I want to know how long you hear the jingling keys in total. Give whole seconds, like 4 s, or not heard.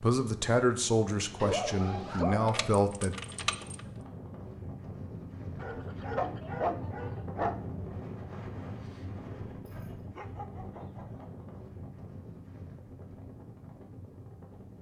2 s.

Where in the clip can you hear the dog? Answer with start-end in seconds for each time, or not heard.
1.4-2.7, 5.5-7.5, 10.1-11.2.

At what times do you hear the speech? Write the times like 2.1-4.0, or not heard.
0.0-3.1.